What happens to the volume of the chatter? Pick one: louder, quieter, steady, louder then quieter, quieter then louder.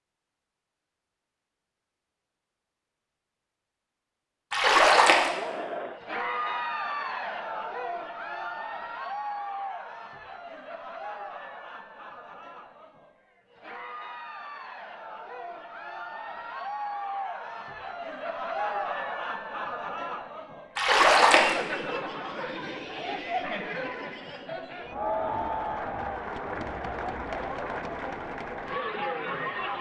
quieter then louder.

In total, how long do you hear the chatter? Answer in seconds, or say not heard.
25 s.